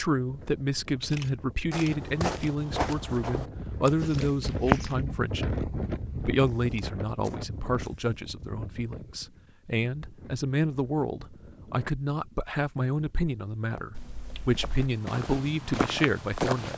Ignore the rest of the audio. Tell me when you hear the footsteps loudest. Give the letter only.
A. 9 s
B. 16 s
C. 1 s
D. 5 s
D.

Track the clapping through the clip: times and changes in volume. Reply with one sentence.
The clapping can't be heard in this clip.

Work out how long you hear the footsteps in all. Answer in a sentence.
The footsteps can be heard for 6 seconds in total.